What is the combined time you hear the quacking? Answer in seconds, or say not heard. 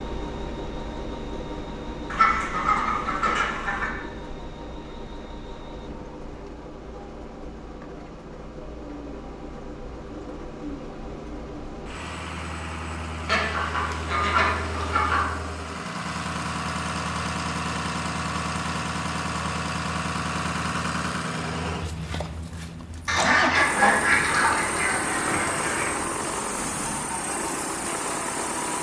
7 s.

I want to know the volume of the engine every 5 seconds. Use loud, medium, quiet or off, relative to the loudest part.
medium, medium, medium, loud, loud, loud.